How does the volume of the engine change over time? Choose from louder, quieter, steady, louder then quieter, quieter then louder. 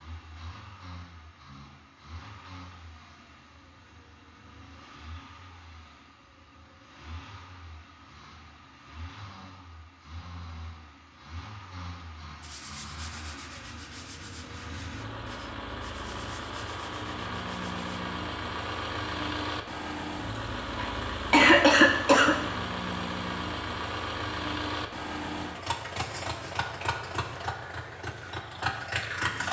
louder.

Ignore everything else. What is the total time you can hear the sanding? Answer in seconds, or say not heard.
6 s.